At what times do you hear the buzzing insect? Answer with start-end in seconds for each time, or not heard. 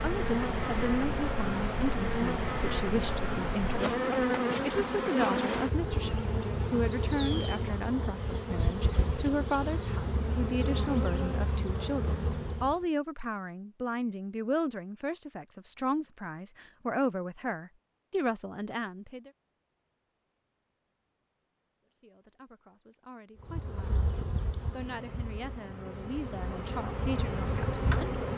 0.0-12.8, 23.4-28.3.